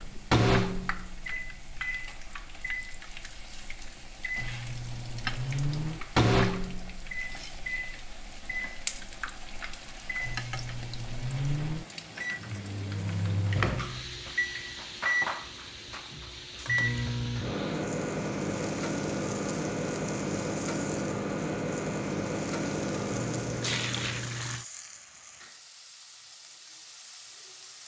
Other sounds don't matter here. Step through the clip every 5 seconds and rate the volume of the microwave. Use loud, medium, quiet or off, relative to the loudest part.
loud, loud, loud, loud, loud, off.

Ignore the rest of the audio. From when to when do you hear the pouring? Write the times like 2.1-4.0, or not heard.
23.1-24.6.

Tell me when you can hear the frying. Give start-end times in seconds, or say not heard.
0.0-27.8.